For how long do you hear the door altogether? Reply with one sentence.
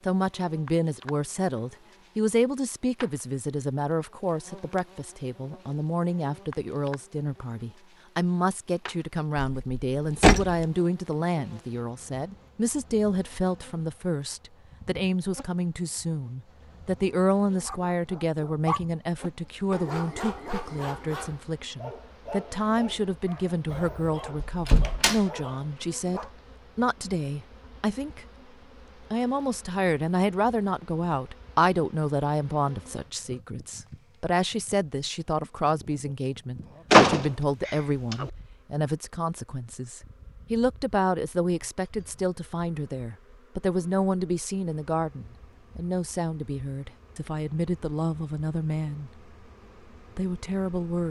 You can hear the door for 4 seconds altogether.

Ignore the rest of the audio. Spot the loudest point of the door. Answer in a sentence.
The loudest moment of the door is at 37 seconds.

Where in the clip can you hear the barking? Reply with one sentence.
You can hear the barking from 17.6 to 26.4 s.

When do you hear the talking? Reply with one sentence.
The talking can be heard from 0.1 to 28.2 s, from 29.1 to 49.1 s and from 50.1 to 51.0 s.